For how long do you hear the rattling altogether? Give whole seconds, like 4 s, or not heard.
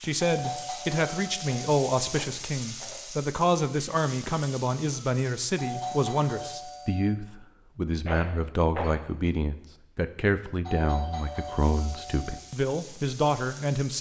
3 s.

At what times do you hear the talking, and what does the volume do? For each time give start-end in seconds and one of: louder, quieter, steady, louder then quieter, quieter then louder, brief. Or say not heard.
0.0-13.9 steady.